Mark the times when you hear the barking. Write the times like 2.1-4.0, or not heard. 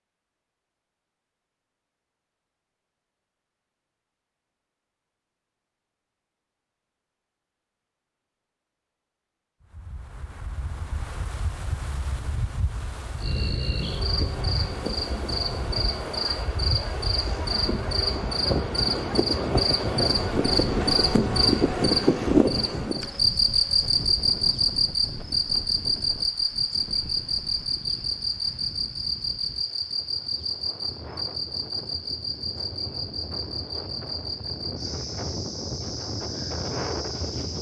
not heard.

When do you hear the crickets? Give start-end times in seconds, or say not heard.
13.2-37.5.